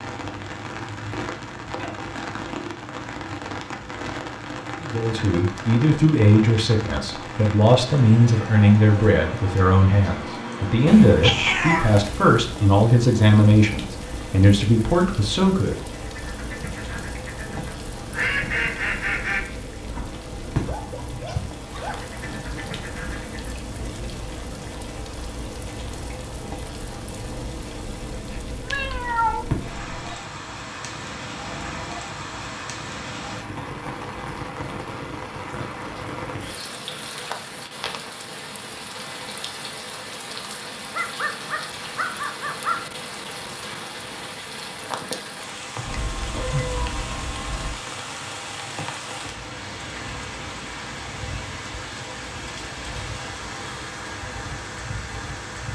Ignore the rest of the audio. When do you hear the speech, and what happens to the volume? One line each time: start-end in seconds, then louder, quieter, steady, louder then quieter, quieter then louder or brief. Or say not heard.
4.8-15.8 steady.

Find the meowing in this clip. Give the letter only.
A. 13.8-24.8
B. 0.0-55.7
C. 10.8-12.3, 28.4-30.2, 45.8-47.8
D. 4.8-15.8
C.